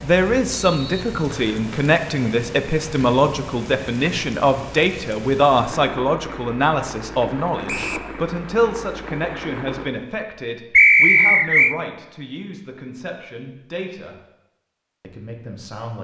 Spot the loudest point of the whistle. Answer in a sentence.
The volume of the whistle peaks at 11 seconds.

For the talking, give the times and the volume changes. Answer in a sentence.
The talking can be heard from 0.0 to 14.2 s, getting quieter; and briefly from 15.0 to 15.9 s.